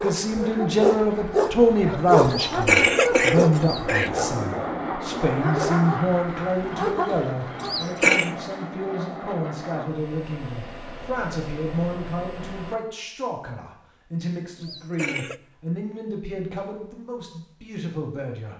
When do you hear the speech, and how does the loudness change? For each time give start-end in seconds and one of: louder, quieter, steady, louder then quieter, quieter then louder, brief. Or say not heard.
0.0-18.5 quieter.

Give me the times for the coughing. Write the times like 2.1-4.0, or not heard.
2.2-4.1, 7.6-8.3, 14.6-15.4.